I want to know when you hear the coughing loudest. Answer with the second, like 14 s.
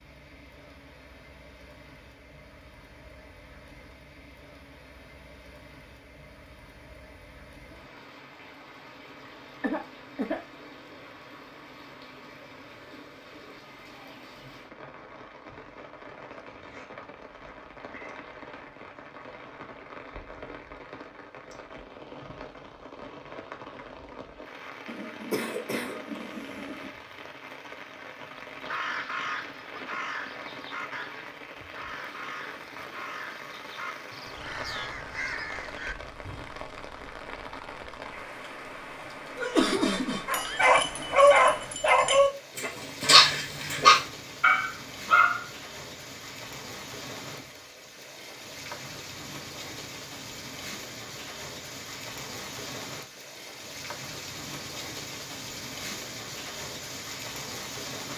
40 s.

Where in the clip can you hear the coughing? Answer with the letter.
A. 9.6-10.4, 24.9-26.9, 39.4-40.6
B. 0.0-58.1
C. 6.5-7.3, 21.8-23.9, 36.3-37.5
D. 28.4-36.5
A.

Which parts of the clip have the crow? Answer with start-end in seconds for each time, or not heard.
28.4-36.5.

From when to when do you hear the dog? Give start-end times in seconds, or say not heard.
40.2-45.5.